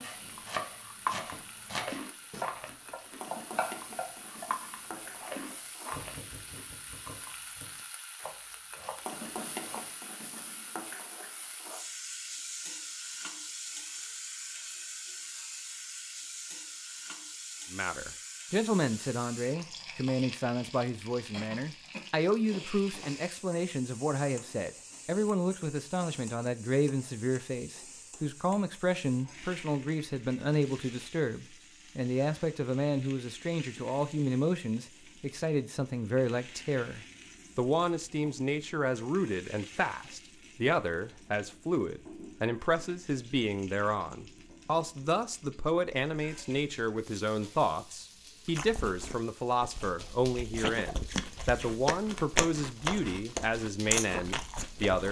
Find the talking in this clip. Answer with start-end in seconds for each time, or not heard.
17.7-55.0.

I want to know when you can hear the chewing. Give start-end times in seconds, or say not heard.
0.3-7.3, 48.5-55.0.